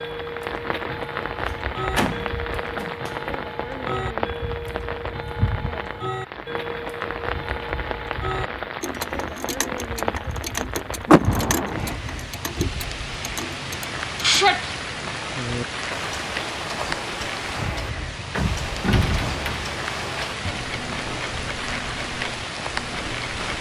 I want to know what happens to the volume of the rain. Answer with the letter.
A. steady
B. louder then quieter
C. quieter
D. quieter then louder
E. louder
A.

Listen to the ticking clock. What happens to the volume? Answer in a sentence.
The volume of the ticking clock stays about the same.